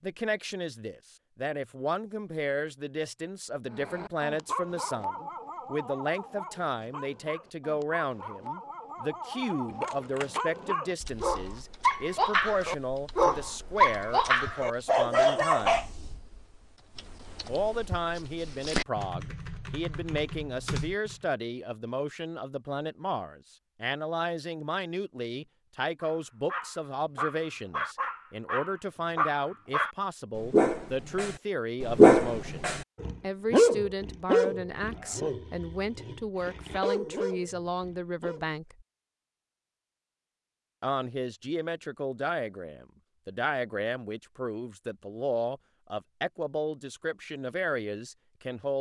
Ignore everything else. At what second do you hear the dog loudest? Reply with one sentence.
The volume of the dog peaks at 32 seconds.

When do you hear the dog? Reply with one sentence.
You can hear the dog from 3.7 to 15.8 s and from 26.0 to 38.5 s.